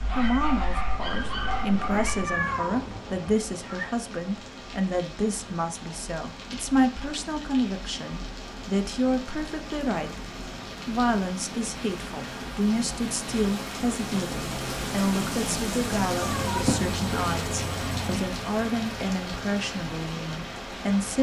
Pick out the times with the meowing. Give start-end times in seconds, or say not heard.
1.1-3.9, 16.2-18.2.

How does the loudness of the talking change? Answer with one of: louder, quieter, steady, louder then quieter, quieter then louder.
steady.